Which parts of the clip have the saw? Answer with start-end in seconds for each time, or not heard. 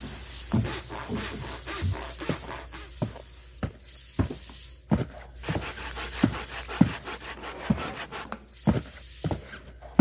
0.5-2.9, 5.4-8.3.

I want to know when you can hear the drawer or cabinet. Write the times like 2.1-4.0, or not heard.
7.2-8.6.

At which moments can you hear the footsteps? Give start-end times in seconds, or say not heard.
0.0-7.0, 7.7-9.9.